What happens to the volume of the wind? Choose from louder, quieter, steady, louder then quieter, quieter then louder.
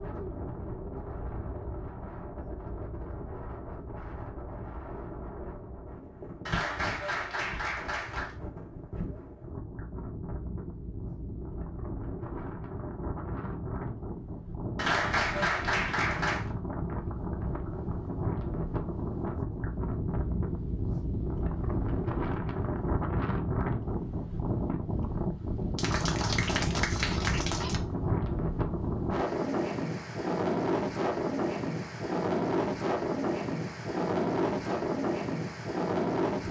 louder.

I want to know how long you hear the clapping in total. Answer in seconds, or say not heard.
6 s.